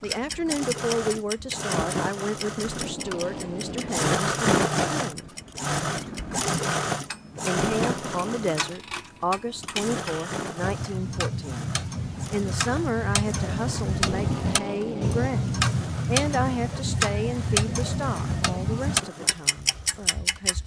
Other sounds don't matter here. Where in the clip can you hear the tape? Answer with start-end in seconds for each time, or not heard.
2.6-4.1, 7.8-8.6, 13.9-15.4.